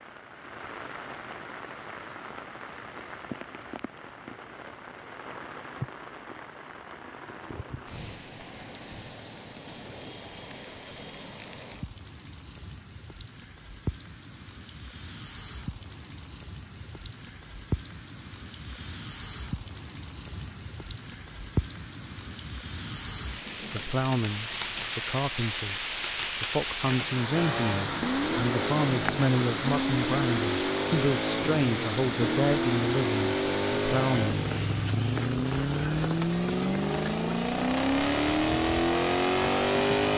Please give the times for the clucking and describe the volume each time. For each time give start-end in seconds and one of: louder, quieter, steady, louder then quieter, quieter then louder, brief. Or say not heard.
not heard.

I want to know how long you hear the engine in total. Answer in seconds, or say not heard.
13 s.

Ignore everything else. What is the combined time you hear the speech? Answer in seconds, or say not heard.
11 s.